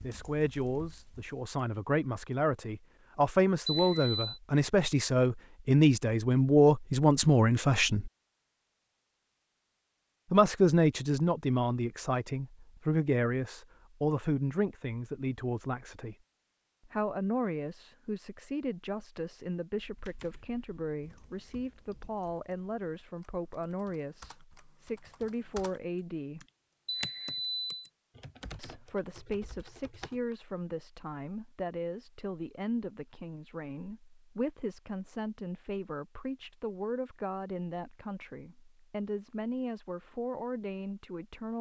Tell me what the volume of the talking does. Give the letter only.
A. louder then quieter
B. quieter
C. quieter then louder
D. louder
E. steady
B.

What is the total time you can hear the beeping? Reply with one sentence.
The beeping can be heard for 2 seconds in total.